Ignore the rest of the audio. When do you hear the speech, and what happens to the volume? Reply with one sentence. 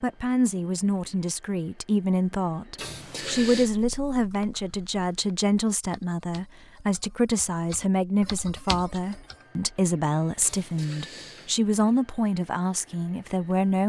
You can hear the speech from 0.0 to 13.8 s, at a steady volume.